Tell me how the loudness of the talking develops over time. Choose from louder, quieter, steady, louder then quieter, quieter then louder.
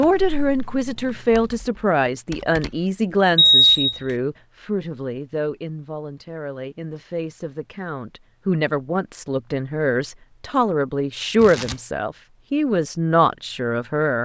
quieter then louder.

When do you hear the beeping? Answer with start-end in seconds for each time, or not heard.
3.4-4.0.